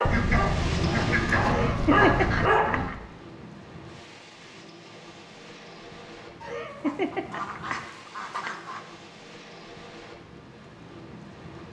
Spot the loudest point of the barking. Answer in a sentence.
The volume of the barking peaks at 2 seconds.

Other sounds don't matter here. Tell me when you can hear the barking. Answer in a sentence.
You can hear the barking from 0.0 to 2.7 s.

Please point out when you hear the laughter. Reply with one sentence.
You can hear the laughter from 1.4 to 3.0 s and from 6.4 to 8.5 s.